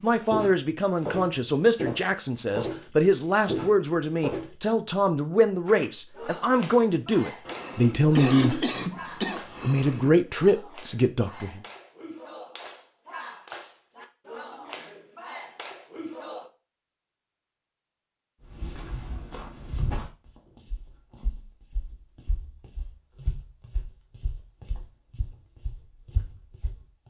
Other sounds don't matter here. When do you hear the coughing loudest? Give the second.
8 s.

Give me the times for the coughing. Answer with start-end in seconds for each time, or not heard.
7.5-10.1.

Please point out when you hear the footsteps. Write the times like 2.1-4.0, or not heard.
0.1-4.5, 18.4-26.9.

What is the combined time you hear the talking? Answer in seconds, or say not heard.
11 s.